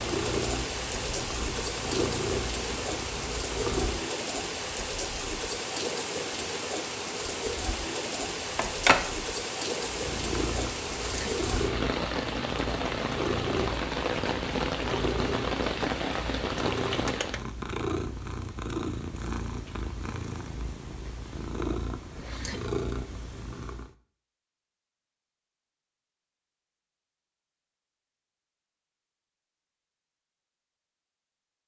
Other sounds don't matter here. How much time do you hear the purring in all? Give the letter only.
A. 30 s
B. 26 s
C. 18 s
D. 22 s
C.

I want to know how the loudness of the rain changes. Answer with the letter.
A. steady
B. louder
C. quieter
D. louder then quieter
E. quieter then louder
A.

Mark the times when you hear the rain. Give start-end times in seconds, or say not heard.
0.0-17.4.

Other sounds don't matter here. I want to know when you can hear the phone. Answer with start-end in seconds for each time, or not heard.
8.6-9.1.